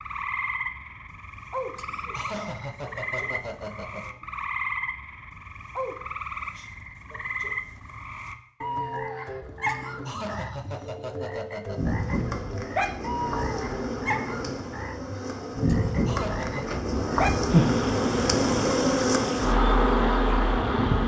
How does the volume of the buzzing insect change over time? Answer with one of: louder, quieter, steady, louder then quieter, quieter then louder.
louder.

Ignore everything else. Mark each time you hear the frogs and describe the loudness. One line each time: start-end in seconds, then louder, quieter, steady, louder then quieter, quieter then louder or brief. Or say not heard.
0.0-21.0 louder.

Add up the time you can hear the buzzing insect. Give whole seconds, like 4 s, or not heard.
9 s.